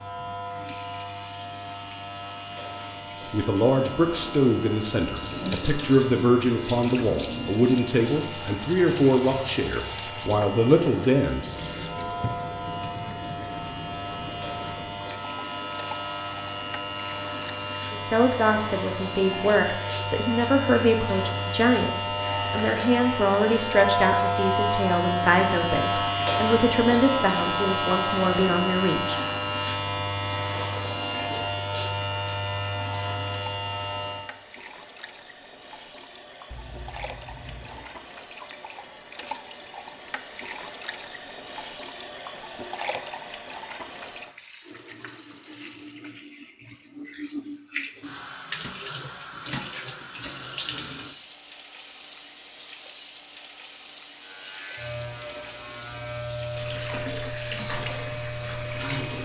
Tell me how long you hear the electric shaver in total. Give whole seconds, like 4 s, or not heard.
39 s.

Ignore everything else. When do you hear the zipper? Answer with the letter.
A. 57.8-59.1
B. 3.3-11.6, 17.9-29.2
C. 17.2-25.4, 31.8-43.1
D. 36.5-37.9
D.